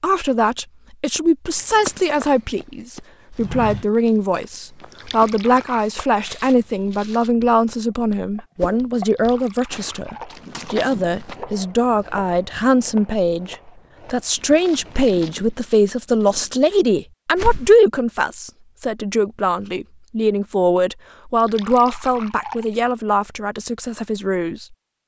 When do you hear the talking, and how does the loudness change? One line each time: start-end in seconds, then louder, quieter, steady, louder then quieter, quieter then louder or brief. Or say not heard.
0.0-25.0 steady.